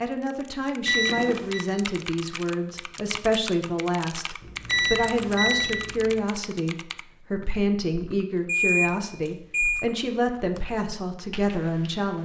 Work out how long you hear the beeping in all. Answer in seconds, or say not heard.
3 s.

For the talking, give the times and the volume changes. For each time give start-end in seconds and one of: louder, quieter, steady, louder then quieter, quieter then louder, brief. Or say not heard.
0.0-12.1 steady.